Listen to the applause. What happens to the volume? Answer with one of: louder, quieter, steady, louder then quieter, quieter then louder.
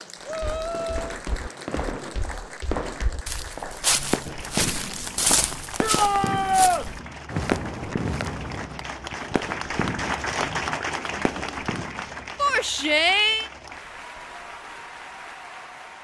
louder then quieter.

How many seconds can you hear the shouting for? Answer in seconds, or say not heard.
3 s.